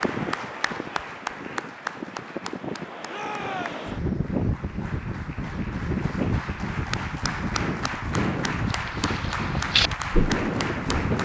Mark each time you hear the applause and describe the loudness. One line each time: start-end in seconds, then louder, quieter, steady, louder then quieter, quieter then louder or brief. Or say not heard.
0.0-11.1 quieter then louder.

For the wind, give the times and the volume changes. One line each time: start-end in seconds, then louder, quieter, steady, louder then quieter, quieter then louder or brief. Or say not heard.
0.0-11.1 louder.